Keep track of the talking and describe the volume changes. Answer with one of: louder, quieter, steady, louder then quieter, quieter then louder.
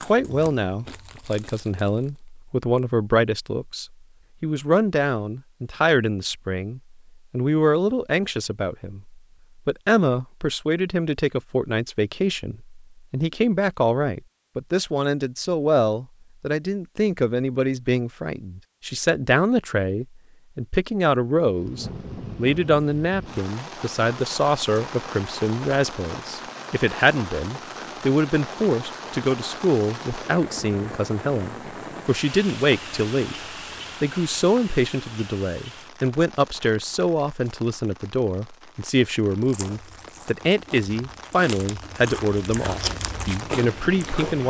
steady.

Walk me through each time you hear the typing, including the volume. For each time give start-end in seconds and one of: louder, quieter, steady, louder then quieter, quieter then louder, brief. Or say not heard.
not heard.